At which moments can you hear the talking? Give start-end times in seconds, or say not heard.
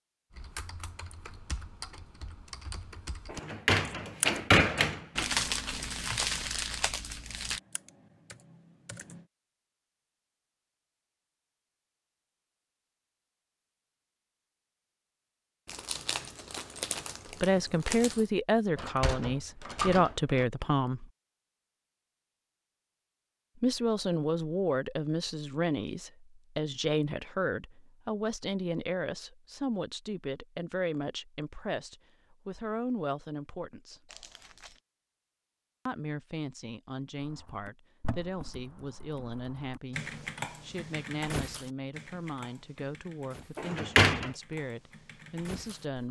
17.4-21.1, 23.6-34.0, 35.9-46.0.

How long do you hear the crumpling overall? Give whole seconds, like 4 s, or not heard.
6 s.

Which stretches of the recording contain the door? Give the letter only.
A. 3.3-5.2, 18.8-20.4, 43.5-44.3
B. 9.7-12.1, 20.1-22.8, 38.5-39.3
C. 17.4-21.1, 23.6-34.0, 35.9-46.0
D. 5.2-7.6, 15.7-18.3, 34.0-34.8
A.